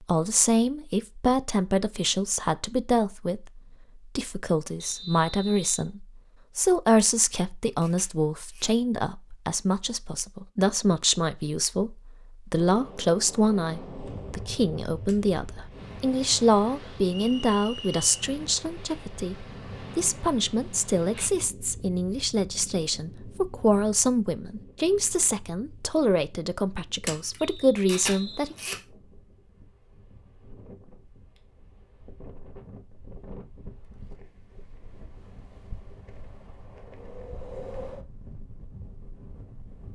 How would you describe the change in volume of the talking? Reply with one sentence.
The volume of the talking stays about the same.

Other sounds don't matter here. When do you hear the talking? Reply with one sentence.
You can hear the talking from 0.0 to 28.6 s.